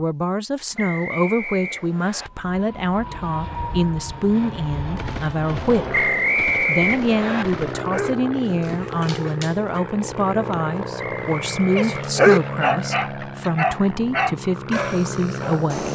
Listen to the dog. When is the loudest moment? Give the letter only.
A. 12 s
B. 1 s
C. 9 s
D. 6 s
A.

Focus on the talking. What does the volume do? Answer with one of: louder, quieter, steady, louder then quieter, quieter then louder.
steady.